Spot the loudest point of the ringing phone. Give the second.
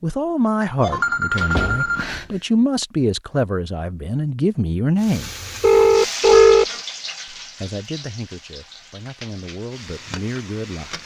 6 s.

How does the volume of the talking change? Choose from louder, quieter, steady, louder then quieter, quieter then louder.
quieter.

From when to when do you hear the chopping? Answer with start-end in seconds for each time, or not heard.
not heard.